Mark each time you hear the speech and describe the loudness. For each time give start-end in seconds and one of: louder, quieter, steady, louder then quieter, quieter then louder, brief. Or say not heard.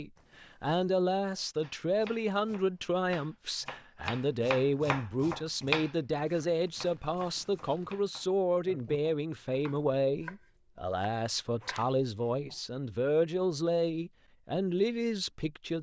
0.0-15.7 steady.